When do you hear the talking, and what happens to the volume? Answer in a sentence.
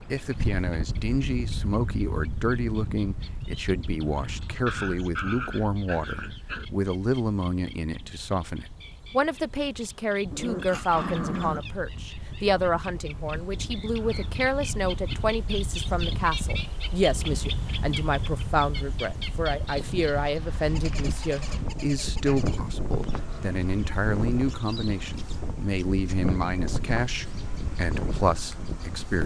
The talking can be heard from 0.1 to 29.2 s, at a steady volume.